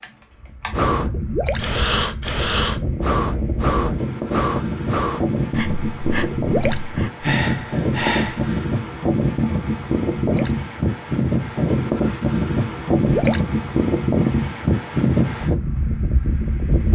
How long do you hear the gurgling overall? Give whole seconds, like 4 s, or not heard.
2 s.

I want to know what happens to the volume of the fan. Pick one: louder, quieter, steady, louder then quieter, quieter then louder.
louder.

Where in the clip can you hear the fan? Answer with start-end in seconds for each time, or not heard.
0.0-16.9.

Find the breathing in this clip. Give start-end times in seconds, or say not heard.
0.7-8.7.